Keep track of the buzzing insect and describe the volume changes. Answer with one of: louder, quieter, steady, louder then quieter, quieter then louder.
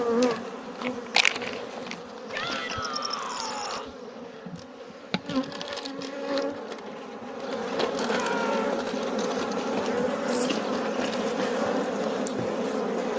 quieter then louder.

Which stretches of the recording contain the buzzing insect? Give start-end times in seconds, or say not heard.
0.0-13.1.